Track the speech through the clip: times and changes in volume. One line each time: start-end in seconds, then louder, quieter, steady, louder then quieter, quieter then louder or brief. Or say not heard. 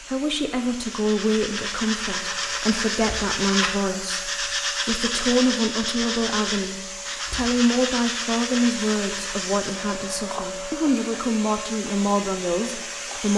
0.0-13.3 steady.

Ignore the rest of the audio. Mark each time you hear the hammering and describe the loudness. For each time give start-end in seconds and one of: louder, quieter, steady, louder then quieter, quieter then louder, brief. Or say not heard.
not heard.